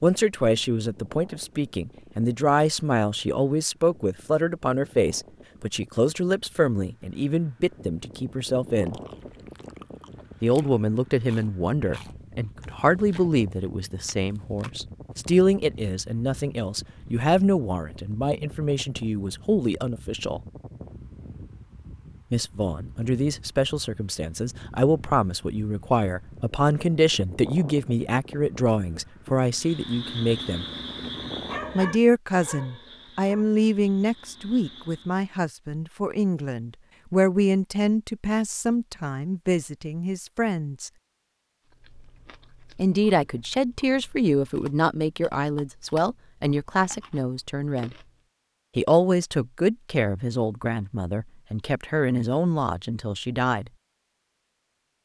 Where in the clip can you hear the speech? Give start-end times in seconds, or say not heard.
0.0-9.0, 10.4-20.4, 22.3-30.6, 31.8-40.9, 42.8-48.0, 48.8-53.7.